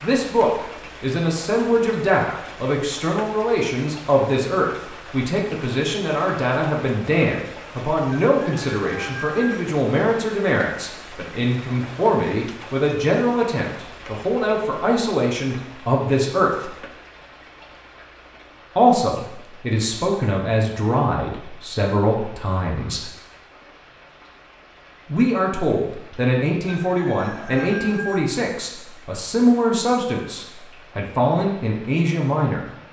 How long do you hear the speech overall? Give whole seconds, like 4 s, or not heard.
29 s.